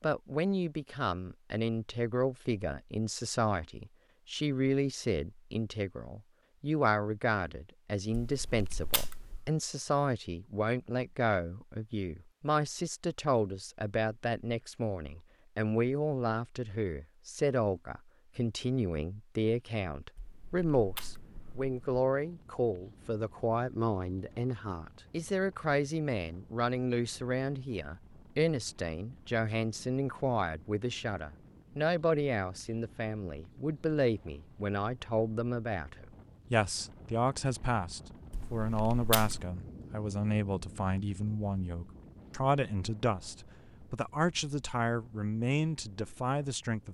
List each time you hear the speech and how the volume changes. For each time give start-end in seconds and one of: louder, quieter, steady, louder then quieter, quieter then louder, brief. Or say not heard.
0.0-46.8 steady.